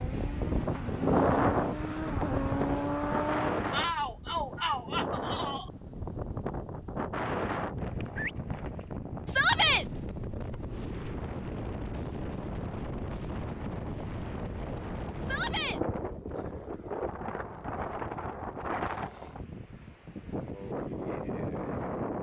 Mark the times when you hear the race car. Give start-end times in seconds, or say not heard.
0.0-3.6.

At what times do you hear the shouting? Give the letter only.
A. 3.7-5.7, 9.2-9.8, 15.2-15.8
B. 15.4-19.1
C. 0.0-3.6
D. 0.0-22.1
A.